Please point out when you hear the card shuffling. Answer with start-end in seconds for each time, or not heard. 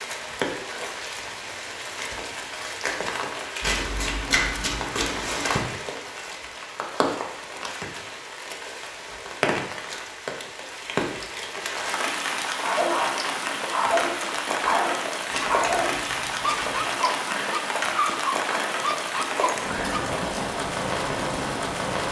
3.6-5.6, 15.3-16.9.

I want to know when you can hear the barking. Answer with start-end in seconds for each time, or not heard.
12.6-20.1.